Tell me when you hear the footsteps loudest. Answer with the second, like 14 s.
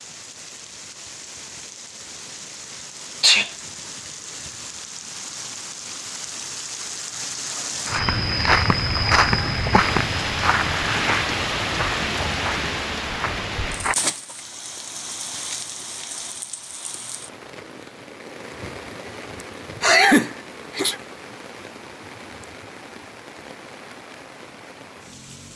9 s.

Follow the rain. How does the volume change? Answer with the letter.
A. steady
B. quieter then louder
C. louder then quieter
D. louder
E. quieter
C.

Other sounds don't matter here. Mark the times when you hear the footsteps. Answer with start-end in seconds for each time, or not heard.
7.8-13.9.